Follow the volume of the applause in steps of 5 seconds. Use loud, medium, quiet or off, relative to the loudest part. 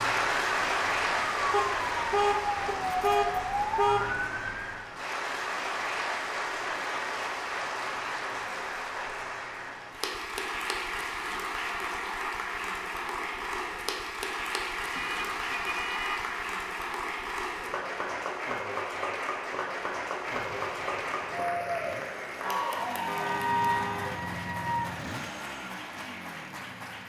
loud, loud, loud, loud, loud, medium.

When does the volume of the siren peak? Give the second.
3 s.